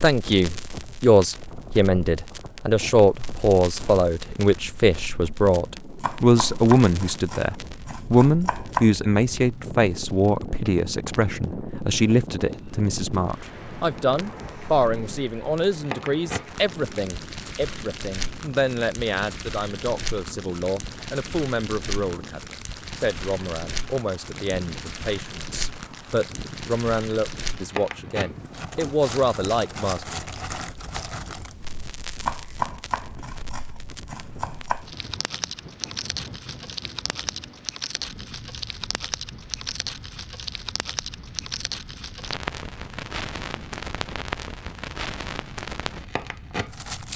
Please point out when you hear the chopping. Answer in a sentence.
You can hear the chopping from 6.0 to 8.9 s and from 32.2 to 34.9 s.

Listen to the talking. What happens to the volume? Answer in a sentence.
The volume of the talking goes down.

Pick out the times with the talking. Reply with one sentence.
You can hear the talking from 0.0 to 30.2 s.